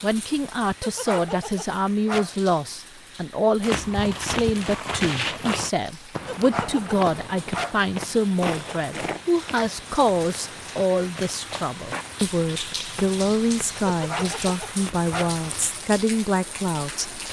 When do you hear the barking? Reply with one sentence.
You can hear the barking from 0.8 to 2.4 s, from 6.2 to 7.8 s and from 13.8 to 15.3 s.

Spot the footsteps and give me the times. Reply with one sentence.
The footsteps can be heard from 3.6 to 15.6 s.